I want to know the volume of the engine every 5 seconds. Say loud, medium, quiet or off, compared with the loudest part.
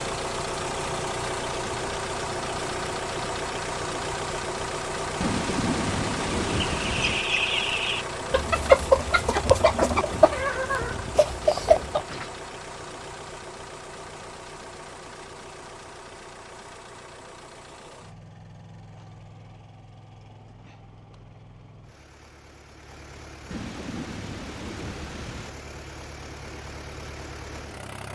loud, loud, medium, quiet, quiet, medium.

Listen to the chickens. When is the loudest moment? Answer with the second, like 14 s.
9 s.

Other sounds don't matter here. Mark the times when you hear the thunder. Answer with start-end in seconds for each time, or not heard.
5.2-7.2, 23.5-25.5.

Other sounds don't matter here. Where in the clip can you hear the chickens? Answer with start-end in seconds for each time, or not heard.
6.5-12.2.